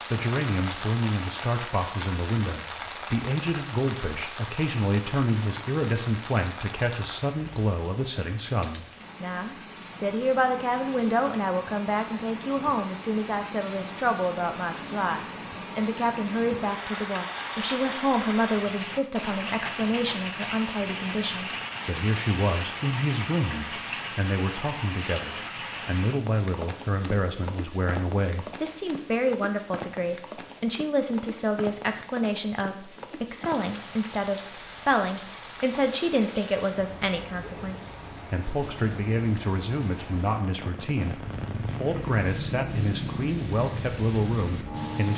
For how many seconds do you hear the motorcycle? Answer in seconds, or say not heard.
4 s.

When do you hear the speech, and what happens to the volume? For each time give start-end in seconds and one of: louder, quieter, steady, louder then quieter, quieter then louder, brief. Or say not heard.
0.1-45.1 steady.